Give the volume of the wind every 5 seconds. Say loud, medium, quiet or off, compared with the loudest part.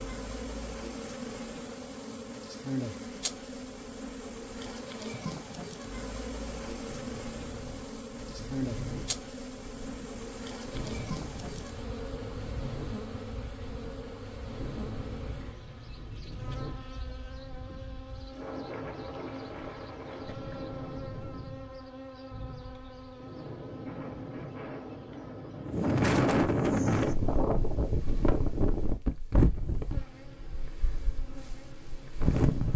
off, quiet, quiet, quiet, quiet, loud, medium.